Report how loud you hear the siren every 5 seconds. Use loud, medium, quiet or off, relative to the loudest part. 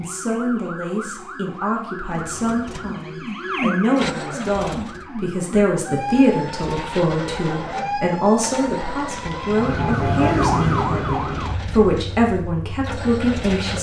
medium, medium, loud.